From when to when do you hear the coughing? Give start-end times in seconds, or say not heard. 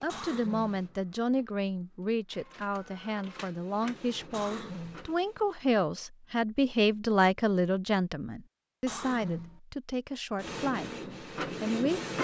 0.1-0.8, 4.3-5.0, 8.8-9.6.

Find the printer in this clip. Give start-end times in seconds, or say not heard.
0.0-5.8, 10.3-12.1.